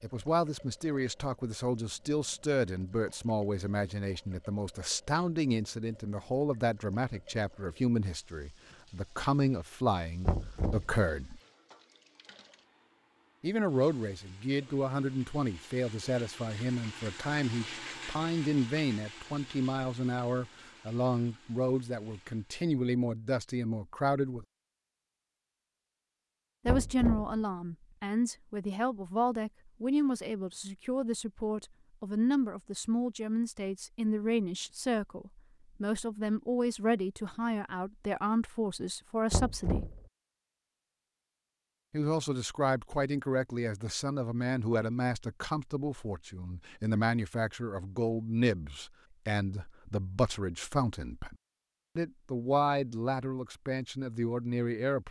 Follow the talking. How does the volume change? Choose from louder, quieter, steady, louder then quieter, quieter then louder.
steady.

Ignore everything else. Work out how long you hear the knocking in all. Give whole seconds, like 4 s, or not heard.
2 s.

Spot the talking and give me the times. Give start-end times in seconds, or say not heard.
0.0-11.4, 13.4-24.4, 26.6-39.9, 41.9-51.4, 52.0-55.0.